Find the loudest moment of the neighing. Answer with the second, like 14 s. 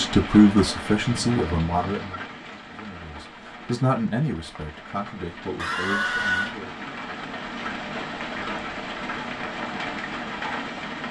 6 s.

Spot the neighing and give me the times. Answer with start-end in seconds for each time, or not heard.
1.1-2.2, 5.5-6.5.